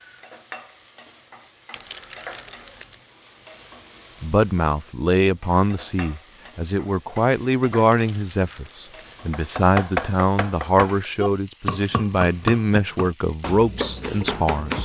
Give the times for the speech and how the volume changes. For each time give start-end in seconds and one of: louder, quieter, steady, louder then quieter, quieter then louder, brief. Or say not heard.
4.2-14.8 steady.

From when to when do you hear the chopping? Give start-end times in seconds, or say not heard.
9.3-14.8.